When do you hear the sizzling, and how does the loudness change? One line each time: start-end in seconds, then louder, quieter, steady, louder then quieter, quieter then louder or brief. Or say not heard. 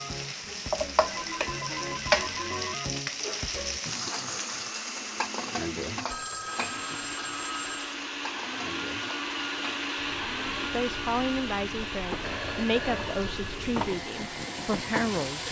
0.0-15.4 quieter then louder.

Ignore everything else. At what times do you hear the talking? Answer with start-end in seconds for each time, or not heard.
10.7-15.4.